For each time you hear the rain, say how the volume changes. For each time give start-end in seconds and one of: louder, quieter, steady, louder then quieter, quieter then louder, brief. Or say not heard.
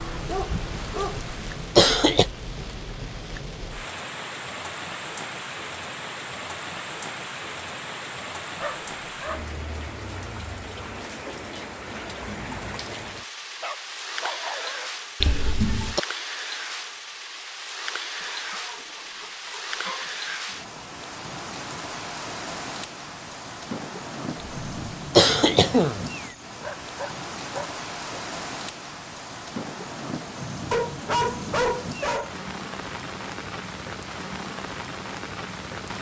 0.0-35.9 steady.